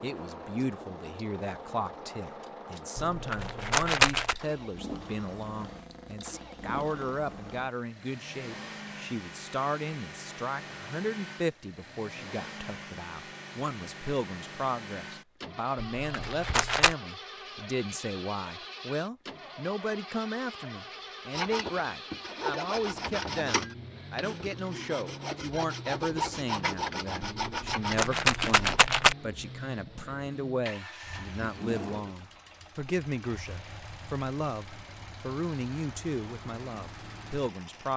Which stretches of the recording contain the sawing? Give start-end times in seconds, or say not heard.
21.4-28.8.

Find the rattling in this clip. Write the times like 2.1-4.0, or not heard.
3.0-4.3, 16.0-16.9, 27.2-29.1.